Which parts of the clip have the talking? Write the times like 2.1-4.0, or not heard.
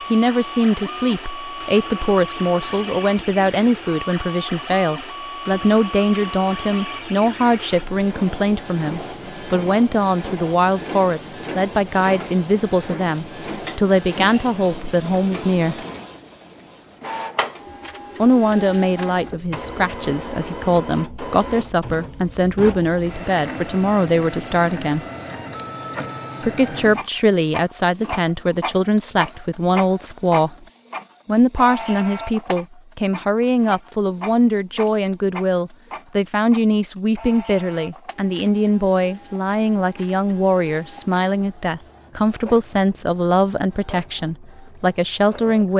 0.1-15.8, 18.1-25.1, 26.4-30.6, 31.2-45.7.